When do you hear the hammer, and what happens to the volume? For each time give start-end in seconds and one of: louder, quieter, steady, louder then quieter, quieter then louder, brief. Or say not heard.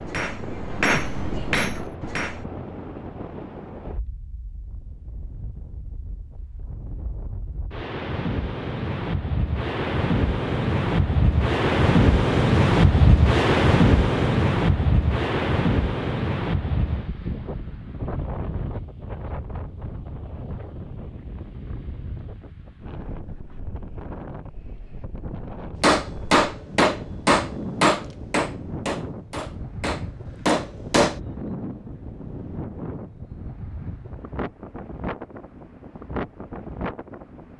0.0-2.5 brief
25.8-31.2 quieter then louder.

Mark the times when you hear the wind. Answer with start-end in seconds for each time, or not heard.
0.0-37.5.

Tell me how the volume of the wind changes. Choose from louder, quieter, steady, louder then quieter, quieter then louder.
louder then quieter.